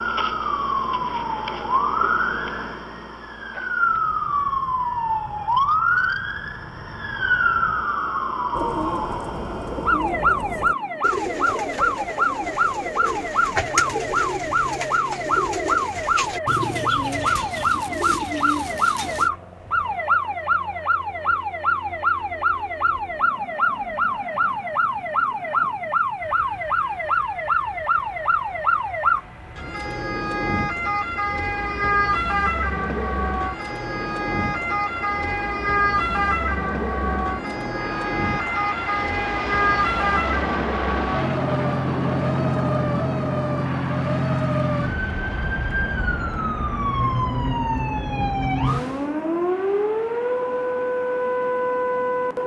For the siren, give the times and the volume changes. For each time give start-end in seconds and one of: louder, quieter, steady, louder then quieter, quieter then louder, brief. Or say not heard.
0.0-52.4 steady.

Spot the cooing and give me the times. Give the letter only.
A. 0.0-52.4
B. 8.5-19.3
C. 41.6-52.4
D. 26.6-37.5
B.